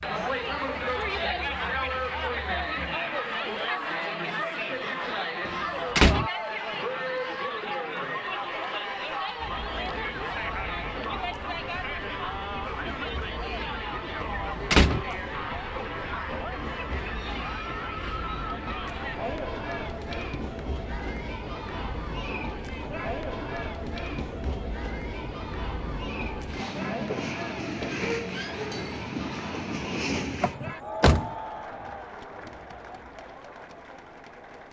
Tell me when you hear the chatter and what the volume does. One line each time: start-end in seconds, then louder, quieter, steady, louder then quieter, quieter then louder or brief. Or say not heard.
0.0-34.6 quieter.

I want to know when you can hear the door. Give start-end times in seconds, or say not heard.
5.5-6.3, 14.2-15.1, 30.4-31.3.